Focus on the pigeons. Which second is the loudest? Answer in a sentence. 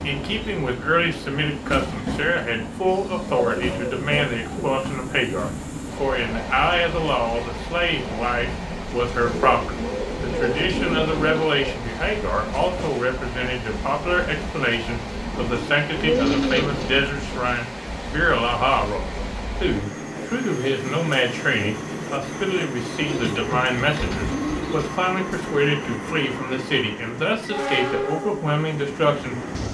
The volume of the pigeons peaks at 16 seconds.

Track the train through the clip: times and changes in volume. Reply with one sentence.
You can hear the train from 0.0 to 29.6 s, at a steady volume.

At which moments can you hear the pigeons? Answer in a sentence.
You can hear the pigeons from 3.4 to 4.8 s, from 9.2 to 11.8 s, from 15.3 to 17.0 s and from 22.9 to 24.9 s.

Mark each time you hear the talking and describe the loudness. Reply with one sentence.
You can hear the talking from 0.0 to 29.4 s, at a steady volume.